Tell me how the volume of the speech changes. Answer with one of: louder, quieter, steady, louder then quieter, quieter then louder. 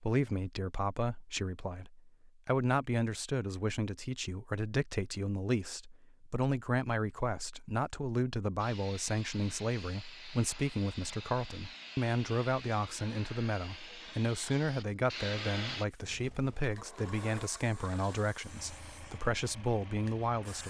steady.